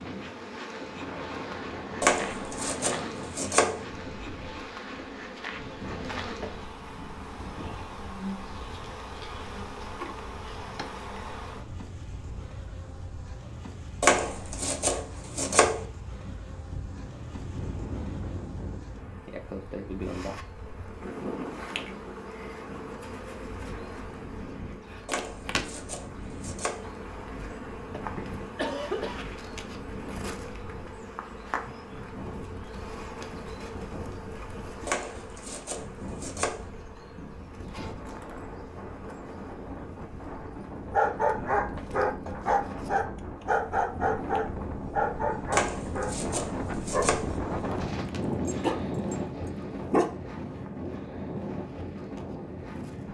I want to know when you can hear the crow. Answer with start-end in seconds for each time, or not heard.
not heard.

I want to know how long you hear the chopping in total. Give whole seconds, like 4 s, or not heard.
9 s.